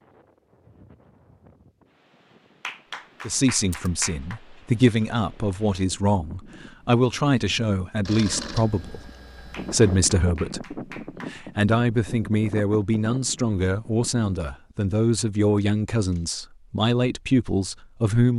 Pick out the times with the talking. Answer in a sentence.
The talking can be heard from 3.2 to 9.1 s and from 9.7 to 18.3 s.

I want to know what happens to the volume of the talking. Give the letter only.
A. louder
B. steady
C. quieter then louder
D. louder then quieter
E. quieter
B.